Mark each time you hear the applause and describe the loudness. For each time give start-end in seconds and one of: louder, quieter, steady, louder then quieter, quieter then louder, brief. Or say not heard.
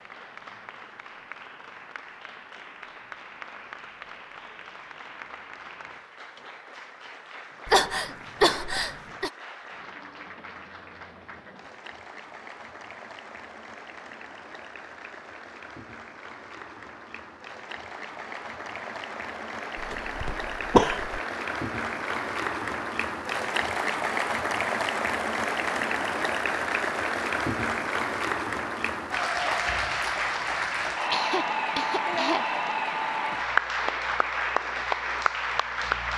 0.0-36.1 louder.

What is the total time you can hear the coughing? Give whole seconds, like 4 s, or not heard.
4 s.